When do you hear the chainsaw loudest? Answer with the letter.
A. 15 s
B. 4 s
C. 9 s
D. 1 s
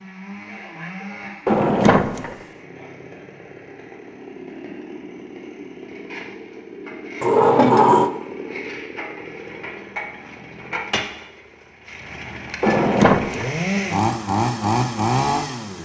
A.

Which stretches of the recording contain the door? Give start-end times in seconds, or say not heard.
1.4-2.4, 7.2-8.1, 12.6-13.5.